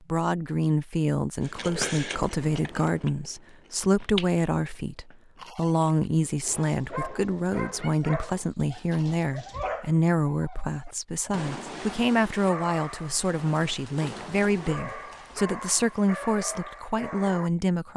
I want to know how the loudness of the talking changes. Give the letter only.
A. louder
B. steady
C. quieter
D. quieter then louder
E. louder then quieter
B.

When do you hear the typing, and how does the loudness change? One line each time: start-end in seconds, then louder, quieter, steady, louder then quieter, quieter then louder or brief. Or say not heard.
not heard.